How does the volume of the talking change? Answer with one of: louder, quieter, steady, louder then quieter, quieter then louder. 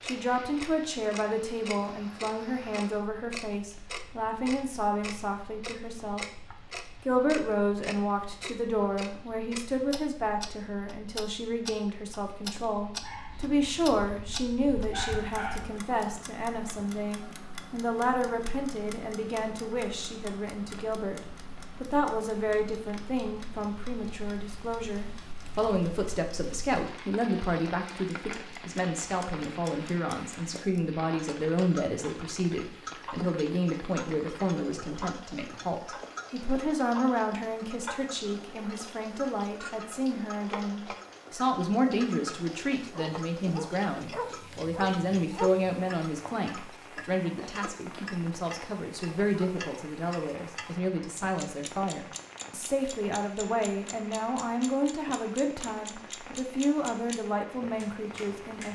steady.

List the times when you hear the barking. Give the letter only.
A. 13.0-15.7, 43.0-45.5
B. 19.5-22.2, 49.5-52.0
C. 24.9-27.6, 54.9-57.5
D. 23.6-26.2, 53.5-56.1
A.